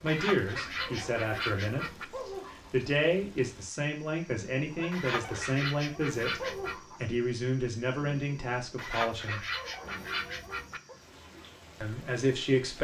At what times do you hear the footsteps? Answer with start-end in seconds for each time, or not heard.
not heard.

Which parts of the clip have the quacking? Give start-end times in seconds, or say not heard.
0.1-2.0, 4.9-6.8, 8.8-10.8.